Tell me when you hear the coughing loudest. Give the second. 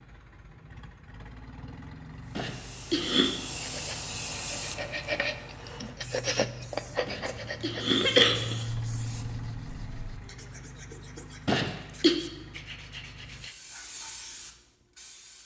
8 s.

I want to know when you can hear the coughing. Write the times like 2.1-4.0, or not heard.
2.4-3.3, 7.0-8.7, 11.4-12.2.